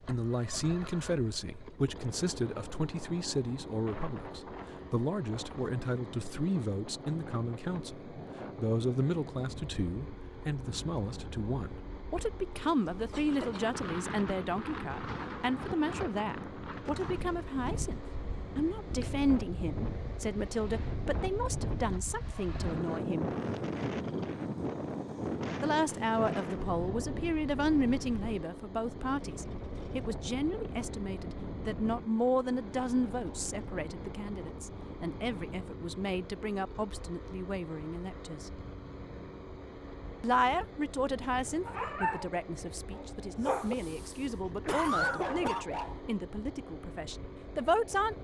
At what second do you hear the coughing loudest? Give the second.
45 s.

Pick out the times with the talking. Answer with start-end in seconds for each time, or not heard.
0.1-23.3, 25.6-38.5, 40.2-48.2.